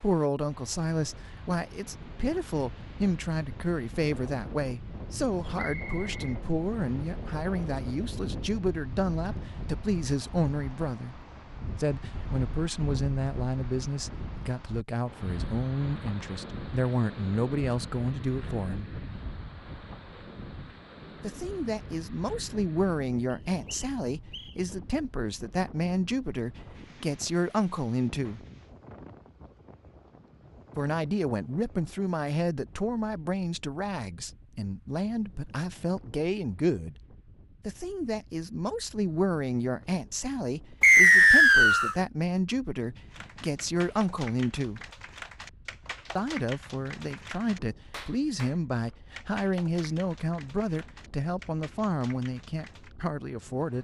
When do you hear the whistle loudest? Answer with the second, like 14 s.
41 s.